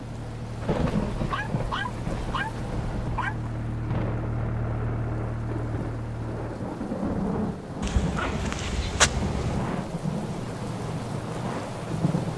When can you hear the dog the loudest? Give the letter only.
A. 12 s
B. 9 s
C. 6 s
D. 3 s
B.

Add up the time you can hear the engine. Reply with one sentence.
You can hear the engine for 10 seconds altogether.